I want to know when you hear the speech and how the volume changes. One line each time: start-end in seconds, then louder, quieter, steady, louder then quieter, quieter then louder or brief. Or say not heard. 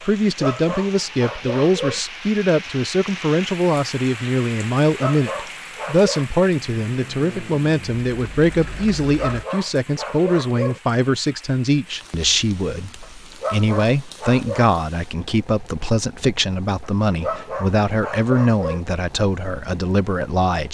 0.0-20.7 steady.